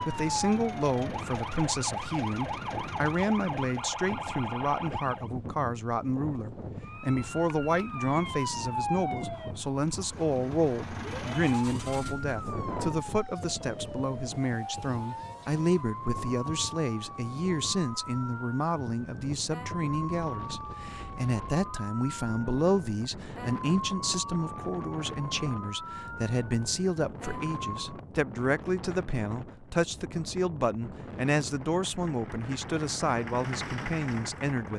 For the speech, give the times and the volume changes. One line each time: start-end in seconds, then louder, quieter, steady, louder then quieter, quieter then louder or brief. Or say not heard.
0.0-34.7 steady.